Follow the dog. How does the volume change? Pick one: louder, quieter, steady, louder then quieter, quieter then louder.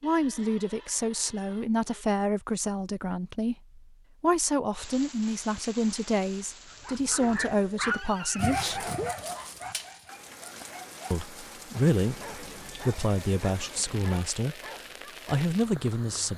quieter.